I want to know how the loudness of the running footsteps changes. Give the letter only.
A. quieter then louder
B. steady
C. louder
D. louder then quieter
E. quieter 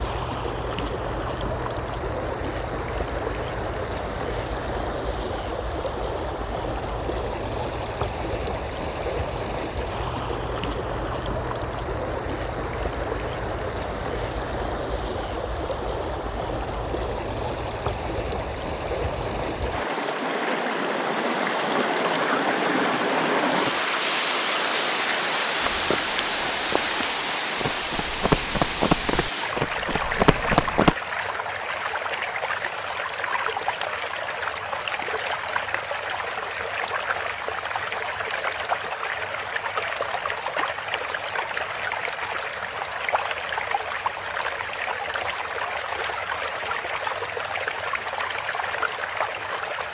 C.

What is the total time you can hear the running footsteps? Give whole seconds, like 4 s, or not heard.
5 s.